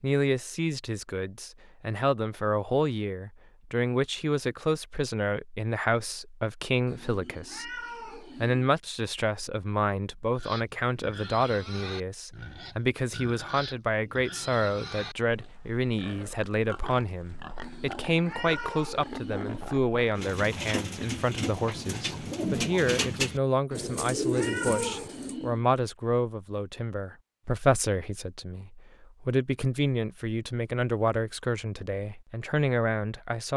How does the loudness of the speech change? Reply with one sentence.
The loudness of the speech stays about the same.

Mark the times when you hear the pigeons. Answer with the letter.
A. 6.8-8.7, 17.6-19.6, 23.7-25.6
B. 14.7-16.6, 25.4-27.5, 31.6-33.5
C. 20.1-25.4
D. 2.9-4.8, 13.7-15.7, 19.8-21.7
C.